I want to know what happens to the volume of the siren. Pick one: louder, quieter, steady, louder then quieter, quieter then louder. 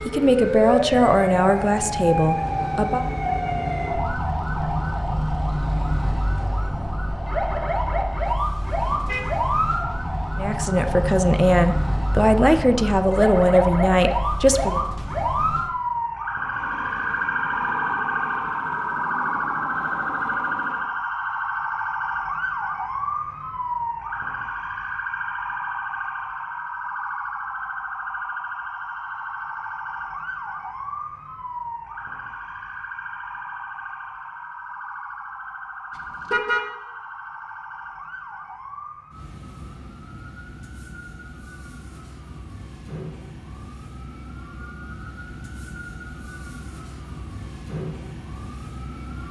quieter.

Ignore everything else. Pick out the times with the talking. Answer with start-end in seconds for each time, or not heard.
0.1-3.0, 10.3-14.8.